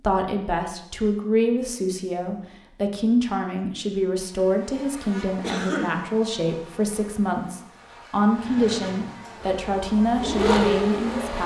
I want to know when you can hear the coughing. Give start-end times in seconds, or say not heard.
5.4-6.0.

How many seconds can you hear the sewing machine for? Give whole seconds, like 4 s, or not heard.
3 s.